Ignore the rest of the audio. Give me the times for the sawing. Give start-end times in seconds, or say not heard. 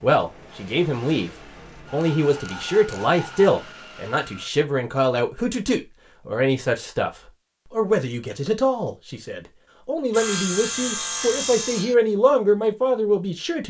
1.9-3.5, 10.1-11.9.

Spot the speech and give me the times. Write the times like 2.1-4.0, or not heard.
0.0-13.6.